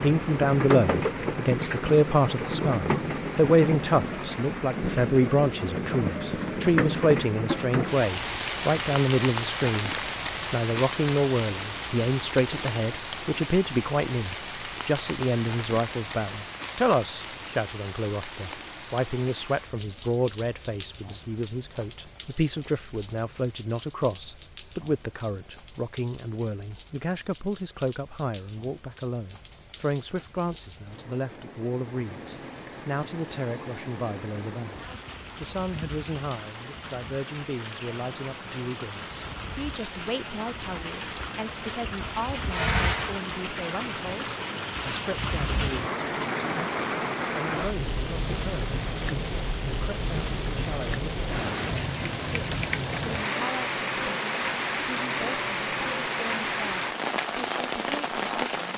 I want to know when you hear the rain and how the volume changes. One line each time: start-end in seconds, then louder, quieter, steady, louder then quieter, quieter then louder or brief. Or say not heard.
0.0-58.7 quieter then louder.